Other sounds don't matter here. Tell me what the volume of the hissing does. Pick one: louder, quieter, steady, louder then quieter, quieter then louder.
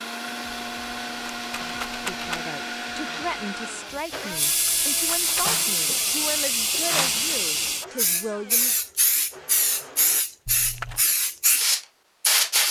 louder.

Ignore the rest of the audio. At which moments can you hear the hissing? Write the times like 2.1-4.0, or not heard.
0.0-12.6.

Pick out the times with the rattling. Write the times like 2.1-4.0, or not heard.
0.5-2.4, 4.5-5.6, 10.4-11.1.